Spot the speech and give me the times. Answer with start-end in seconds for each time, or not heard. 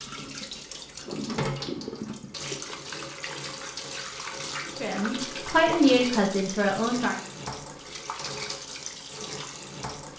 4.8-7.2.